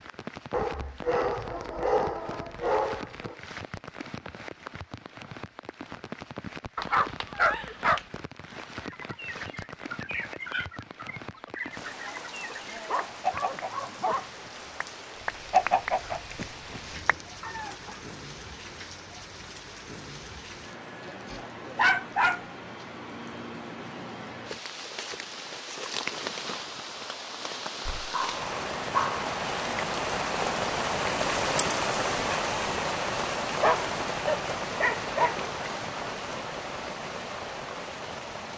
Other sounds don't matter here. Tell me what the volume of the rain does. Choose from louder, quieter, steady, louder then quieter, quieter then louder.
louder.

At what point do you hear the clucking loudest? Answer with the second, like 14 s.
16 s.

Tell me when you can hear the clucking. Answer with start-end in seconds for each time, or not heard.
8.8-18.1.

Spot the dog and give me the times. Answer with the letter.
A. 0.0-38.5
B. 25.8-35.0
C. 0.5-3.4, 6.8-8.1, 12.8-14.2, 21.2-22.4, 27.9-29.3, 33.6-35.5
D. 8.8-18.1
C.